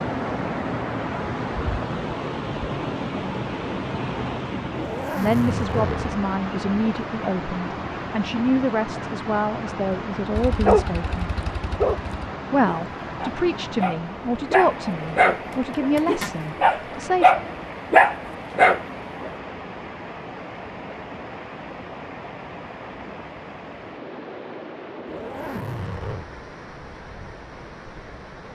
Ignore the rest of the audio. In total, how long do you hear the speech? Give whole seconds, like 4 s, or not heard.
11 s.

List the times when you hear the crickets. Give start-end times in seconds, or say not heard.
not heard.